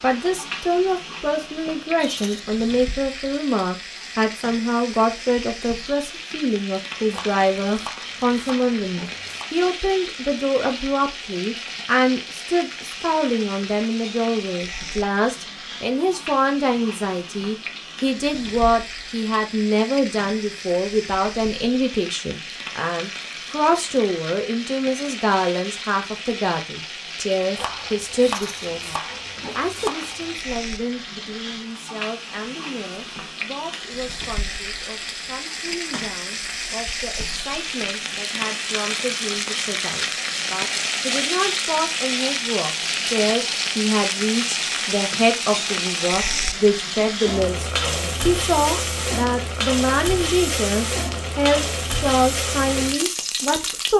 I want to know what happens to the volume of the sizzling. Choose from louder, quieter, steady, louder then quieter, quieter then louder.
louder.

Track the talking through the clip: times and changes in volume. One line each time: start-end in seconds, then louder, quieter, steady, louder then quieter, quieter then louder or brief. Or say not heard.
0.0-53.9 quieter then louder.